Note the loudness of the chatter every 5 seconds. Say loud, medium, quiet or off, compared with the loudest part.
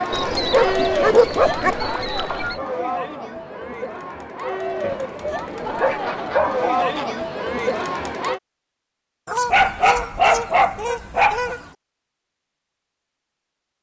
loud, loud, off.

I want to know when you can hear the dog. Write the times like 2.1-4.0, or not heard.
0.5-1.8, 4.8-6.7, 9.5-11.5.